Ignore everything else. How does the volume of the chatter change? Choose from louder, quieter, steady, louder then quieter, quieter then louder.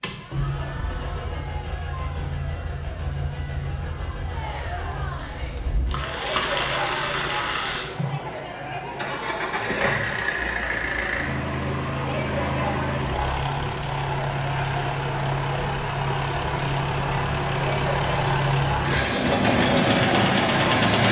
louder.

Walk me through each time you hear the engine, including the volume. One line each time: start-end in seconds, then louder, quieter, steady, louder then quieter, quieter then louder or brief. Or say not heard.
0.0-21.0 louder.